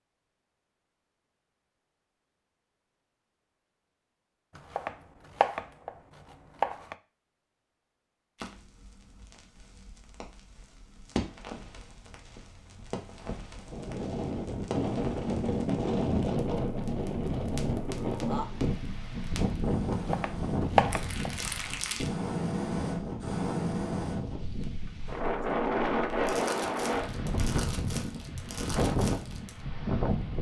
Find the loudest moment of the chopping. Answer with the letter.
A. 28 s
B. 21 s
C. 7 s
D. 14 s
B.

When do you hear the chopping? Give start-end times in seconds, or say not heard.
4.5-7.0, 19.9-21.8.